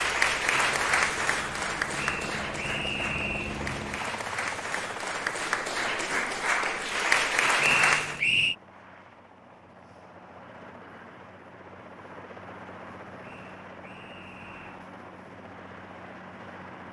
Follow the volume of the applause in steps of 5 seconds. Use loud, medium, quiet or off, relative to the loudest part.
loud, loud, off, off.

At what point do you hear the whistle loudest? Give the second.
8 s.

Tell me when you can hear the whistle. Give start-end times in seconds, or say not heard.
1.9-3.6, 7.5-8.6, 13.2-14.8.